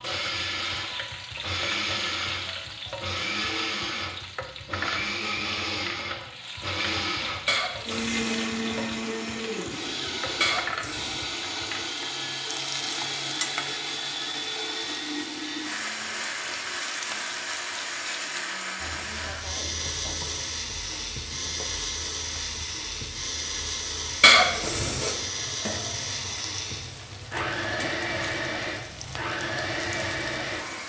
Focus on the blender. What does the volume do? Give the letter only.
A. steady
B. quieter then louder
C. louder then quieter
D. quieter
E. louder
A.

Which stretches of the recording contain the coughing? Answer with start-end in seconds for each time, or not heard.
7.5-8.3, 10.4-11.2, 24.2-25.1.